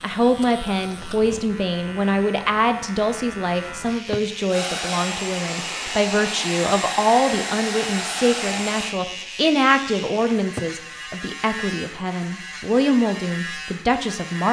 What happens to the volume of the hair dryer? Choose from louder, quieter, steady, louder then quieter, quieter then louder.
steady.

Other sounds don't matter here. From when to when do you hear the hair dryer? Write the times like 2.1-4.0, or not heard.
4.5-8.9.